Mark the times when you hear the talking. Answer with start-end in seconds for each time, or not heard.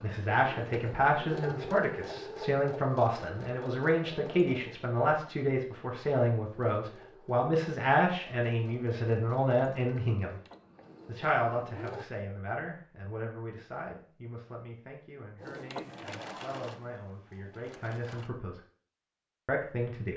0.0-10.4, 11.1-18.6, 19.4-20.1.